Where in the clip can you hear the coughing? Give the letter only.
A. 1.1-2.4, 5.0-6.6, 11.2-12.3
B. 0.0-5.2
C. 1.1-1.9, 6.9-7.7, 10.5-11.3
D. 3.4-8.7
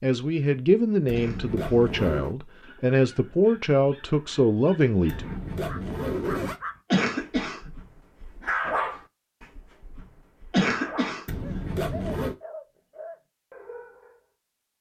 C.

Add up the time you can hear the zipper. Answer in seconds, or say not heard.
4 s.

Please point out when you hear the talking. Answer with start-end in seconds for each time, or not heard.
0.0-5.2.